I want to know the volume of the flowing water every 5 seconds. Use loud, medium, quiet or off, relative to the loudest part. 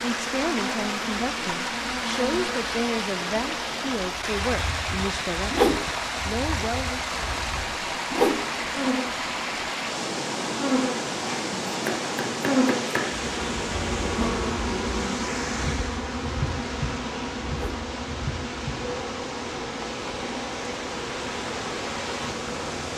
loud, loud, loud, medium, loud.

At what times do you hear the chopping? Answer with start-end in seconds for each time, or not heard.
11.7-13.2.